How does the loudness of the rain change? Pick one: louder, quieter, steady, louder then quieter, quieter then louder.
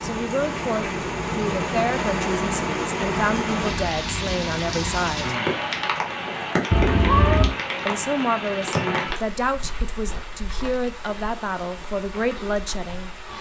quieter.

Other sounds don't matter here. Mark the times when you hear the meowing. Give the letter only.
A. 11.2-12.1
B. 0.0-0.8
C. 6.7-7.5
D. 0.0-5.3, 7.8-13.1
C.